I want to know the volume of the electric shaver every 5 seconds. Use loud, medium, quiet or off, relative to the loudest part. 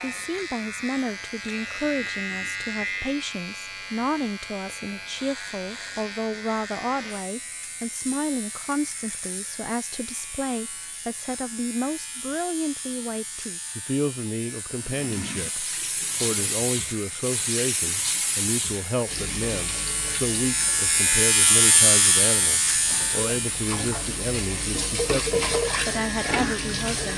medium, quiet, quiet, quiet, loud, medium.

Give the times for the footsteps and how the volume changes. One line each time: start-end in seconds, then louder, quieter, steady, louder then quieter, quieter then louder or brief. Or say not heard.
not heard.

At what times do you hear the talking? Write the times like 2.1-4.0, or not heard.
0.0-27.1.